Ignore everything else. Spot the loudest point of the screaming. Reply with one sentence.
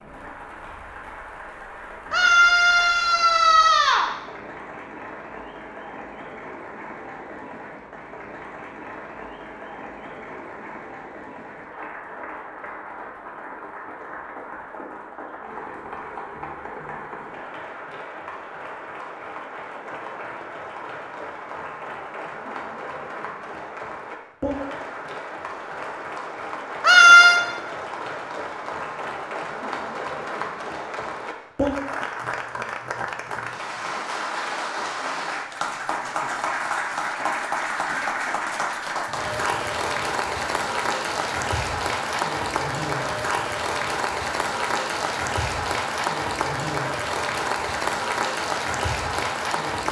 The loudest moment of the screaming is at 27 seconds.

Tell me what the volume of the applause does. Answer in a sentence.
The loudness of the applause goes up.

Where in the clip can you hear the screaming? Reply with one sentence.
You can hear the screaming from 2.1 to 4.0 s and from 26.8 to 27.4 s.